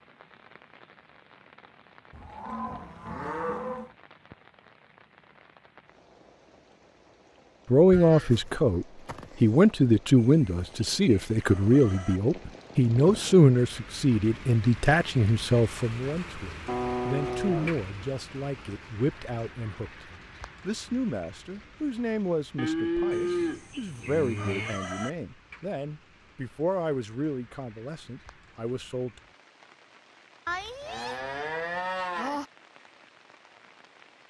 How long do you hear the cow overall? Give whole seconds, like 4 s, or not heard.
9 s.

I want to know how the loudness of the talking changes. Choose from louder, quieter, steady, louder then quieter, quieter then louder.
quieter.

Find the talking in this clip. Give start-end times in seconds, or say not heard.
7.7-29.1.